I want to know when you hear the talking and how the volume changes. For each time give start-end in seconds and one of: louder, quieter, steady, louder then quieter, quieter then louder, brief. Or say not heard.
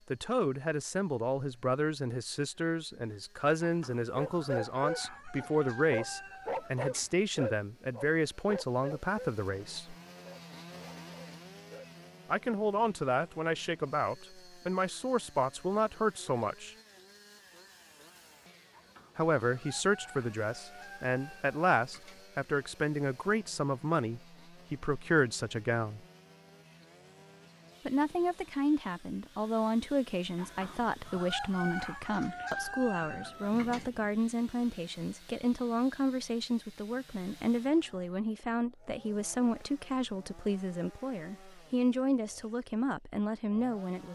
0.1-9.9 steady
12.2-16.8 steady
19.1-26.0 steady
27.9-44.1 steady.